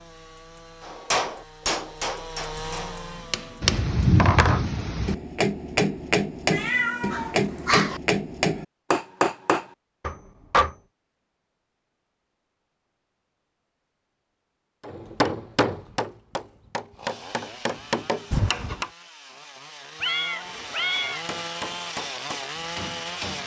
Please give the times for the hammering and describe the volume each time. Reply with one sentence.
You can hear the hammering from 0.8 to 10.8 s, getting louder; from 14.8 to 18.9 s, getting quieter then louder; and briefly from 20.9 to 23.4 s.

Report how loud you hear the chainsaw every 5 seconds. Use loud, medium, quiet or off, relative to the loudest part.
medium, off, off, medium, loud.